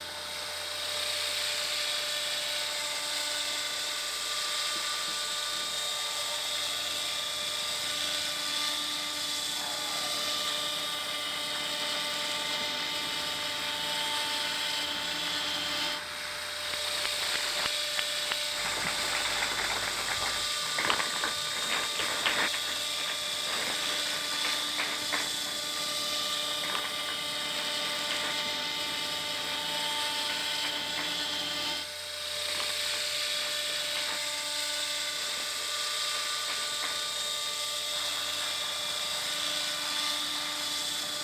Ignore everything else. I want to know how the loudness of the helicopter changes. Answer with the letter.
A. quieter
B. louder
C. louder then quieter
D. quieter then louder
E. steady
E.